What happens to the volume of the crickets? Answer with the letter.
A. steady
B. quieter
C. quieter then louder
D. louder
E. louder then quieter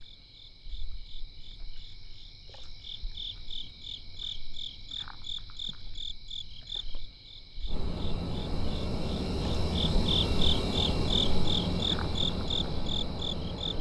D.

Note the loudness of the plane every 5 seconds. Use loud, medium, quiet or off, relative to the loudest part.
off, loud, loud.